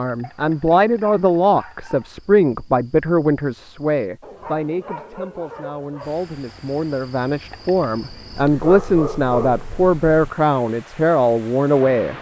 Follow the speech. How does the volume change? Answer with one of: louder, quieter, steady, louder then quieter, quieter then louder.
quieter then louder.